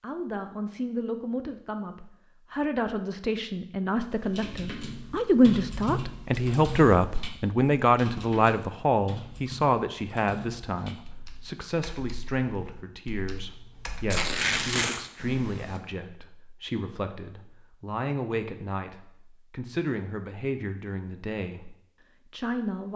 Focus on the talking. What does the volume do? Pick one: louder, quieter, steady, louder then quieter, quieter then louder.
louder then quieter.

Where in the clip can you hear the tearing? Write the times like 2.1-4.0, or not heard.
14.1-15.1.